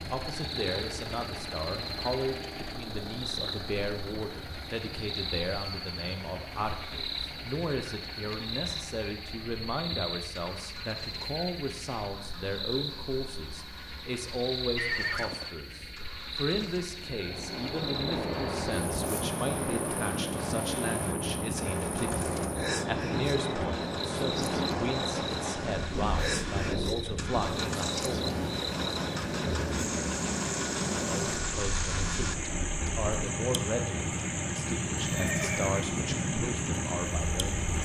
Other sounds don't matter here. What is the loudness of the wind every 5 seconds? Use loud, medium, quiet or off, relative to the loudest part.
off, off, off, loud, loud, loud, loud, loud.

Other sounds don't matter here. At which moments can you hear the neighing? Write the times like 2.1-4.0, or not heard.
14.8-15.4, 35.1-35.9.